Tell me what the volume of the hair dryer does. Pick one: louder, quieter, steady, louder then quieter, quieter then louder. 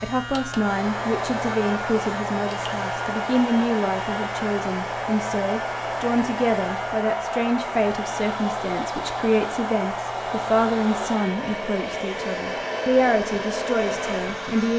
steady.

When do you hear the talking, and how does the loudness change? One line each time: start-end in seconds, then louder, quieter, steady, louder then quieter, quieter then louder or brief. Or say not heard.
0.0-14.7 steady.